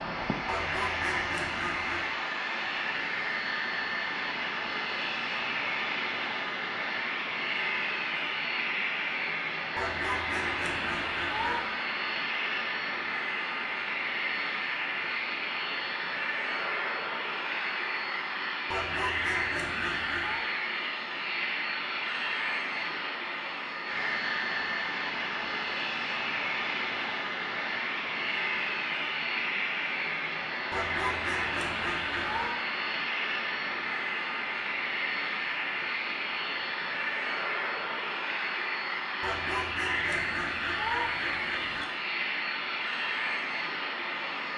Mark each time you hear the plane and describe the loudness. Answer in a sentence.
The plane can be heard from 0.0 to 44.5 s, at a steady volume.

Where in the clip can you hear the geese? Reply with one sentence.
The geese can be heard from 0.5 to 2.2 s, from 9.8 to 11.7 s, from 18.7 to 20.4 s, from 30.7 to 32.5 s and from 39.2 to 41.9 s.